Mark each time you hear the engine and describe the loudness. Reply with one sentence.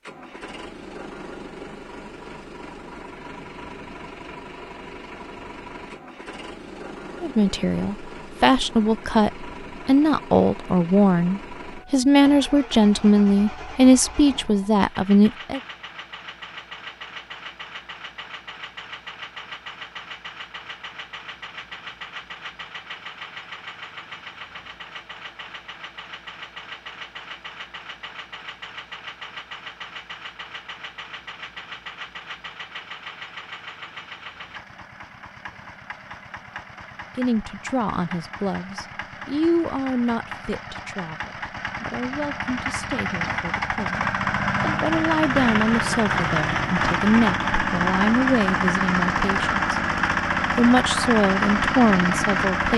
You can hear the engine from 0.0 to 52.7 s, getting louder.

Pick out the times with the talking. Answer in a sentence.
The talking can be heard from 7.2 to 15.6 s, from 37.1 to 49.8 s and from 50.5 to 52.7 s.